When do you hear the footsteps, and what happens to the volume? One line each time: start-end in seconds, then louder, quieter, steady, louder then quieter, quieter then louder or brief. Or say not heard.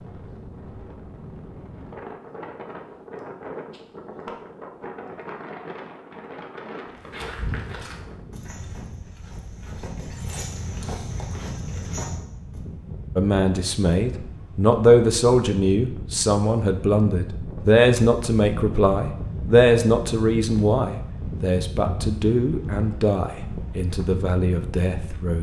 6.8-12.6 quieter then louder.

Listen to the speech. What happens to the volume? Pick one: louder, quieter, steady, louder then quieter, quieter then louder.
quieter.